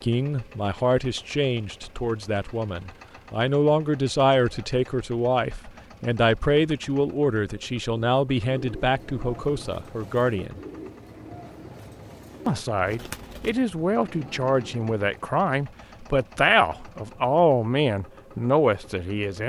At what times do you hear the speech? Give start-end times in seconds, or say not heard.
0.0-10.6, 12.4-19.4.